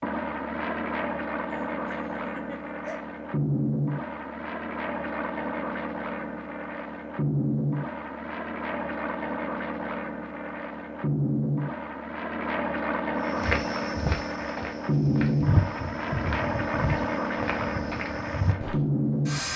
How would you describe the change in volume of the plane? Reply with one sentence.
The volume of the plane stays about the same.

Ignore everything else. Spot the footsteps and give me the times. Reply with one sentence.
The footsteps can be heard from 13.2 to 18.8 s.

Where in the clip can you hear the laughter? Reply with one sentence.
The laughter can be heard from 1.7 to 3.0 s.